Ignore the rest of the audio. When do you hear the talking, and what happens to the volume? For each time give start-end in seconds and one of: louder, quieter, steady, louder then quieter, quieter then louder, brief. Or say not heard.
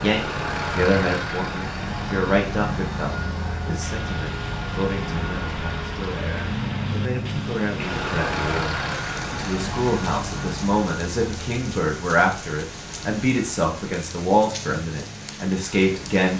0.0-16.3 quieter then louder.